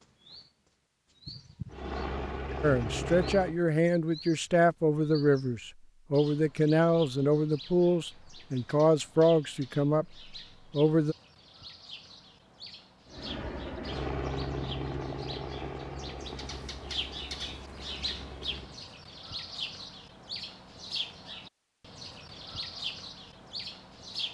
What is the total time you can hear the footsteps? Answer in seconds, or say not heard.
not heard.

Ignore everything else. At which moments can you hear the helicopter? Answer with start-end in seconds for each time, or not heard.
1.7-3.5, 13.1-18.8.